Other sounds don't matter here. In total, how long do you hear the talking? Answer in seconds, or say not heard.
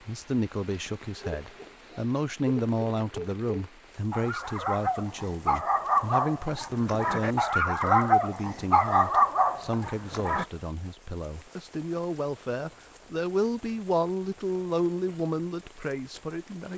17 s.